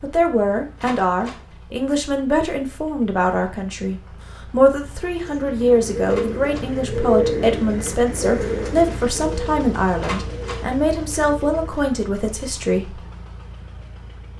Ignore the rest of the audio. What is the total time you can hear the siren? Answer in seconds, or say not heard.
not heard.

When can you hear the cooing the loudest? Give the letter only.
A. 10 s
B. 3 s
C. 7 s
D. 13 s
C.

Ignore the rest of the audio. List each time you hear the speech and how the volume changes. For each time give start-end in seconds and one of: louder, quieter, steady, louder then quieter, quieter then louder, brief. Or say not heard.
0.0-13.0 steady.